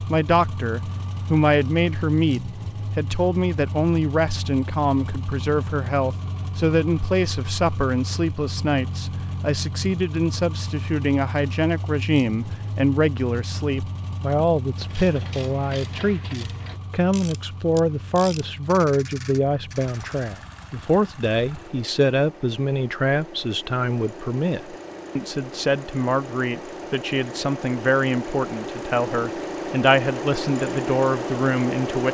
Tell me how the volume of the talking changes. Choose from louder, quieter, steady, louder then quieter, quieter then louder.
steady.